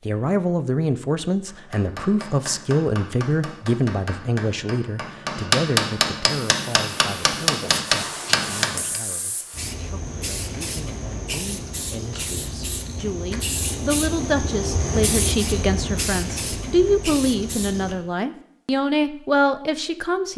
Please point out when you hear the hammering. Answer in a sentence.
You can hear the hammering from 1.4 to 9.0 s.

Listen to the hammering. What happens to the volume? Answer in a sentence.
The volume of the hammering goes up.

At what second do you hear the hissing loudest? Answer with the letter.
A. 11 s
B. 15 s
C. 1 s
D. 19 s
B.